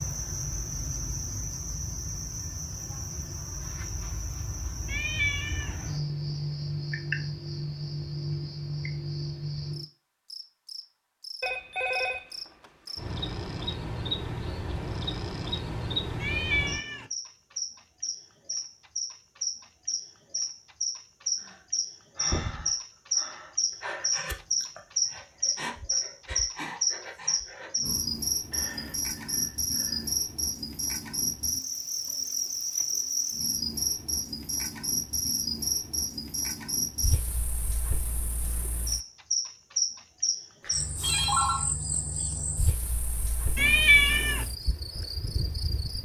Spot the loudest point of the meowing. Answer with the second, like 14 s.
44 s.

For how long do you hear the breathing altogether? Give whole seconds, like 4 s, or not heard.
9 s.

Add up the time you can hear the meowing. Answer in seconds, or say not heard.
3 s.